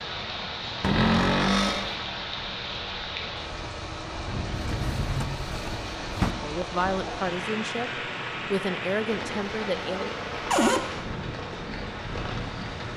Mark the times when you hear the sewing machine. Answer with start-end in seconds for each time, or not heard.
not heard.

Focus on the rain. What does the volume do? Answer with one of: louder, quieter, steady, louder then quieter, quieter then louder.
steady.